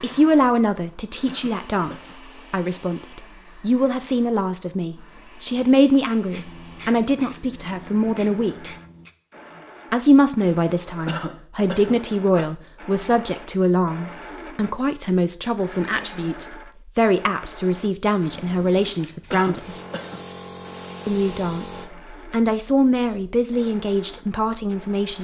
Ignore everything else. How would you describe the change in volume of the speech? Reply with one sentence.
The loudness of the speech stays about the same.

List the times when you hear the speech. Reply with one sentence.
The speech can be heard from 0.0 to 8.7 s, from 9.9 to 19.8 s and from 21.1 to 25.1 s.